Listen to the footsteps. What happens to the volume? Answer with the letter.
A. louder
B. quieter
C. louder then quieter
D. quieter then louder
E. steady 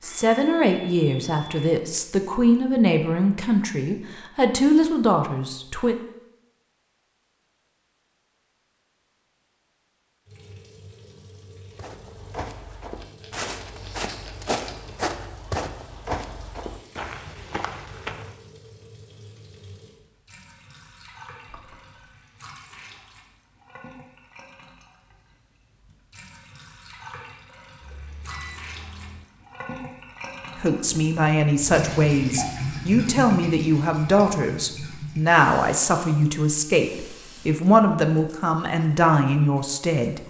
C.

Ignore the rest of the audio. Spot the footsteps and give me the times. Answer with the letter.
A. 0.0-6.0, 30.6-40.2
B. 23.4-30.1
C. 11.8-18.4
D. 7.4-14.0
C.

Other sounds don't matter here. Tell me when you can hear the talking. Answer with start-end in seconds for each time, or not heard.
0.0-6.0, 30.6-40.2.